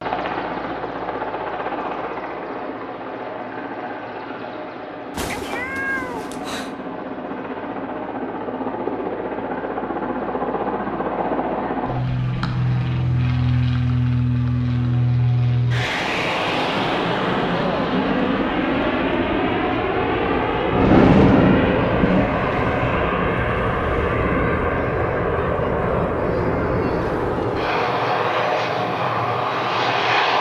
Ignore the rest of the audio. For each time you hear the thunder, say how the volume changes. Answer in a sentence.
The thunder can be heard from 20.1 to 24.9 s, getting quieter.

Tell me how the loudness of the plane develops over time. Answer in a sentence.
The loudness of the plane goes up.